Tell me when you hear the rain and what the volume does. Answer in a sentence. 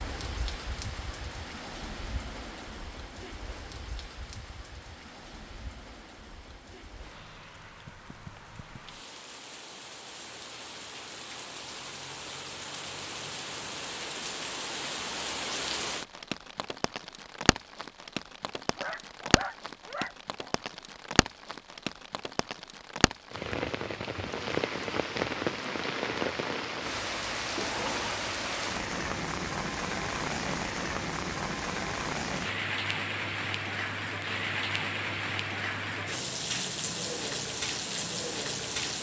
The rain can be heard from 0.0 to 38.9 s, getting louder.